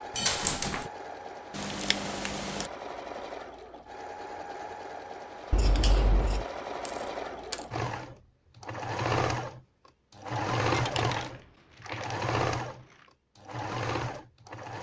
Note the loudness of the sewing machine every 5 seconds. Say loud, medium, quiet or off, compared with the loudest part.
medium, loud, loud.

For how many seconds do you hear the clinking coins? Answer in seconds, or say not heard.
2 s.